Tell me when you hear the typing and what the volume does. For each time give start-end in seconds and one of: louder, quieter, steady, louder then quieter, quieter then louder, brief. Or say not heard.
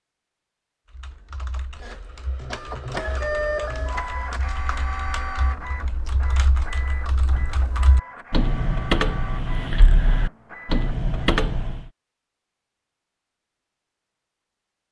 0.9-11.9 louder.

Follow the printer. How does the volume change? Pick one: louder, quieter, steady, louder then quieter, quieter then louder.
quieter.